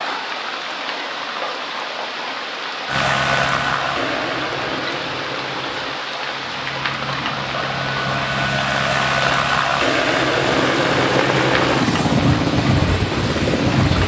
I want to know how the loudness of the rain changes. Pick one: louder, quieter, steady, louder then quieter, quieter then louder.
steady.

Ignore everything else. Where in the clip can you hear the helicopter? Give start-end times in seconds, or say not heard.
2.9-14.0.